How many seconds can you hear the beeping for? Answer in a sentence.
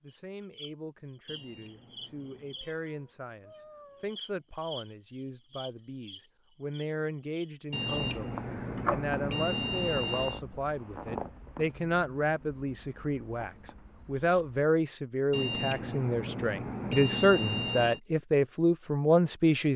You can hear the beeping for 7 seconds altogether.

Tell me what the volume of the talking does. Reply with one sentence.
The volume of the talking goes up.